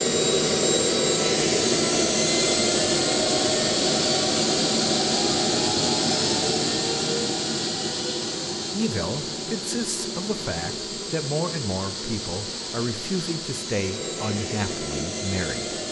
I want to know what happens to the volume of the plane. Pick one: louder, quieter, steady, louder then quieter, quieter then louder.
quieter.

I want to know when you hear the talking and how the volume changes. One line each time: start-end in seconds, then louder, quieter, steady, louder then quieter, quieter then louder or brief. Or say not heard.
8.7-15.8 steady.